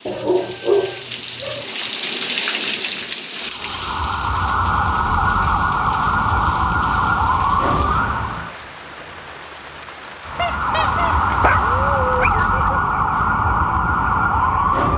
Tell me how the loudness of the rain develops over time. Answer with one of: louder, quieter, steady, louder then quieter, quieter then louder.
quieter.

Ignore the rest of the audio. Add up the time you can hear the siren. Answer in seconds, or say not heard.
10 s.